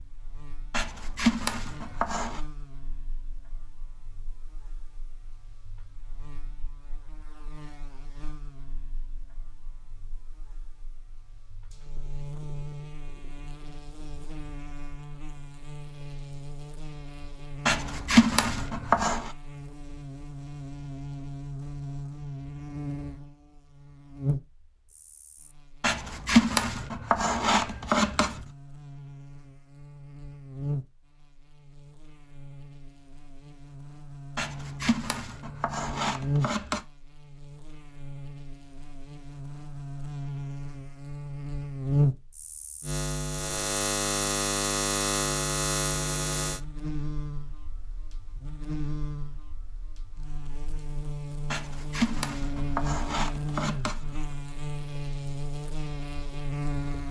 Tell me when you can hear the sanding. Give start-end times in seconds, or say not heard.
0.7-2.4, 17.6-19.3, 25.8-28.4, 34.4-36.8, 51.5-54.2.